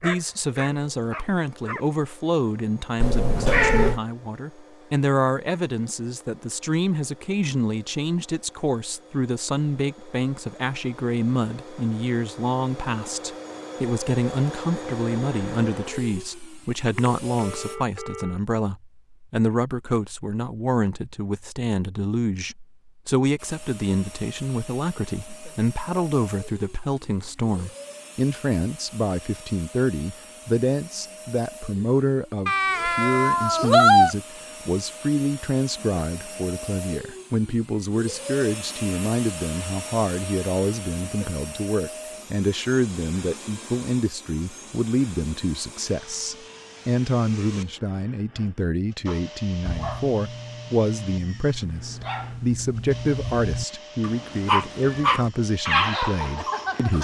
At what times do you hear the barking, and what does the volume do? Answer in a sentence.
You can hear the barking briefly from 0.0 to 1.9 s; and from 49.0 to 56.9 s, getting louder.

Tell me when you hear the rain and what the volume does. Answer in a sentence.
You can't hear the rain here.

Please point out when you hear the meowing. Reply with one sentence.
You can hear the meowing from 3.0 to 4.0 s, from 32.5 to 34.1 s and from 54.8 to 55.5 s.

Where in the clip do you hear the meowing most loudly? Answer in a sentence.
The loudest moment of the meowing is at 34 seconds.